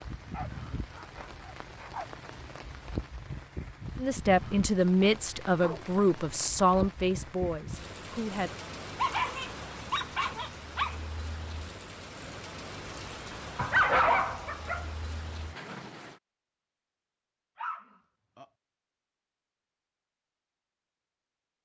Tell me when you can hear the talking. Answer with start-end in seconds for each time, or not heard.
4.0-8.5.